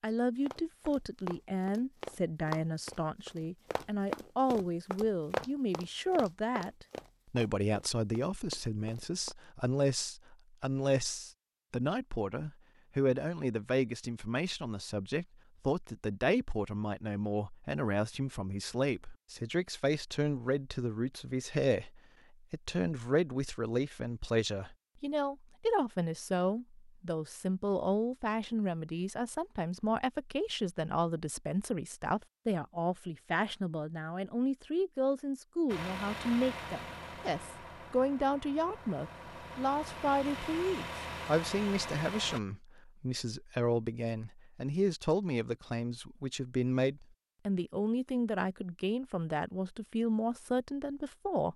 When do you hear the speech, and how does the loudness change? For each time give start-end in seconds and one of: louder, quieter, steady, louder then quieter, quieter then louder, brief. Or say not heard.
0.0-51.5 steady.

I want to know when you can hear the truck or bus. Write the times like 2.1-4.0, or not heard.
35.6-42.4.